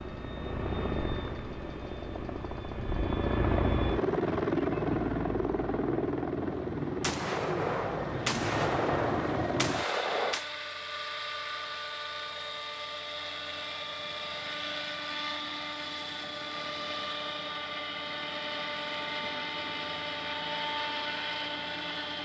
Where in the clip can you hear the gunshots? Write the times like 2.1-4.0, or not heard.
7.0-10.5.